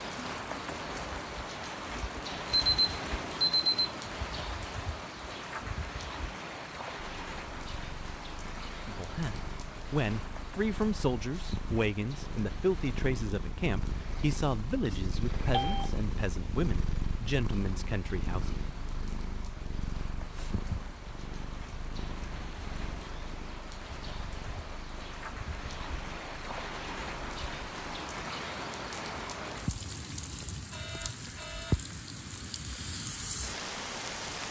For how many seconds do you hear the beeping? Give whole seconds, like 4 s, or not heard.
3 s.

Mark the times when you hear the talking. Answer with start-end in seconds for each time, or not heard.
8.8-18.6.